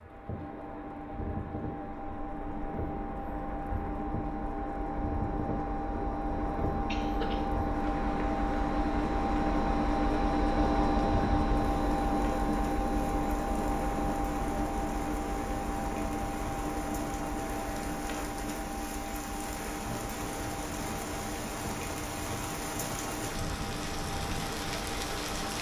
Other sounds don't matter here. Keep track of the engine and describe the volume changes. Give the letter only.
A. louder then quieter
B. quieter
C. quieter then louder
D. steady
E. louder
A.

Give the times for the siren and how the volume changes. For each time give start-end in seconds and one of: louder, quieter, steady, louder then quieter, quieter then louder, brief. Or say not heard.
not heard.